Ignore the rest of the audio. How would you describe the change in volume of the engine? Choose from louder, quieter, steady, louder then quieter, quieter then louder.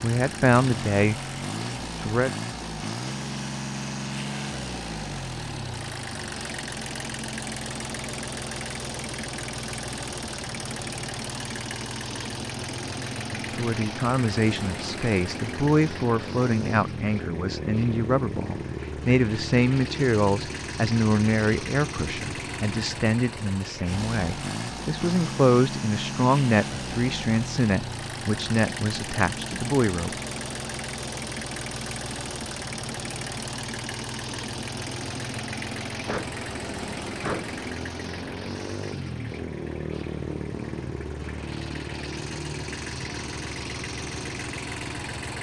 steady.